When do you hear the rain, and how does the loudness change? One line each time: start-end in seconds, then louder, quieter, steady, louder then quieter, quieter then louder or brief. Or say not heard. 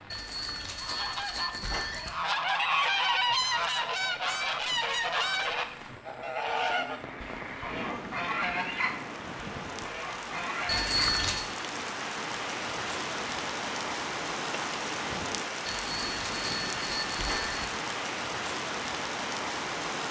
0.0-20.0 louder.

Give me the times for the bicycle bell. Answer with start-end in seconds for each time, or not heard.
0.1-2.1, 10.7-11.4, 15.7-17.6.